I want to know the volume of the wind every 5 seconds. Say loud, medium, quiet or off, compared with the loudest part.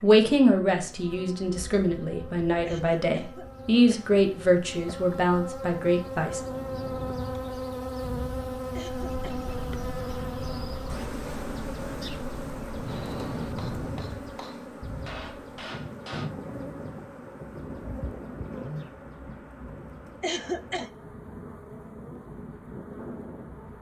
off, loud, loud, loud, medium.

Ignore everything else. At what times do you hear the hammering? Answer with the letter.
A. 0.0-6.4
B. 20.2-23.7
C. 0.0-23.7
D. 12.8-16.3
D.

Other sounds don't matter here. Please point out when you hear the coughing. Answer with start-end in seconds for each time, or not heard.
2.6-4.2, 8.7-9.5, 20.2-20.9.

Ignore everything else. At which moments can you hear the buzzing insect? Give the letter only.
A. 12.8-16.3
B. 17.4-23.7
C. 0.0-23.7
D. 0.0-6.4
C.